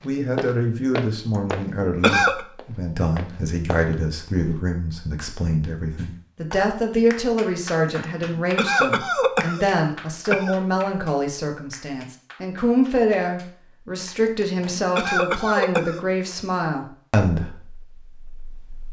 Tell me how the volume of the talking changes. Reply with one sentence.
The volume of the talking stays about the same.